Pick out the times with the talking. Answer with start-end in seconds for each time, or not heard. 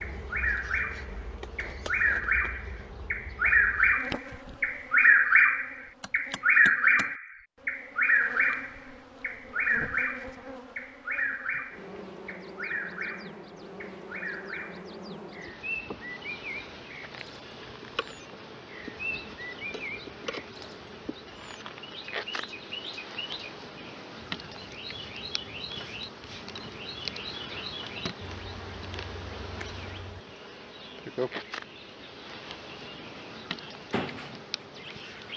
not heard.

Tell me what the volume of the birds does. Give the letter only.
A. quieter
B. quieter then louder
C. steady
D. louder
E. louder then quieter
A.